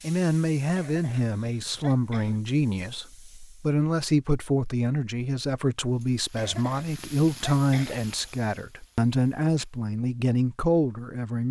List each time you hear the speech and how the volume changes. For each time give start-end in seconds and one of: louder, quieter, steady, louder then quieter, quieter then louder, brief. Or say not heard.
0.0-11.4 steady.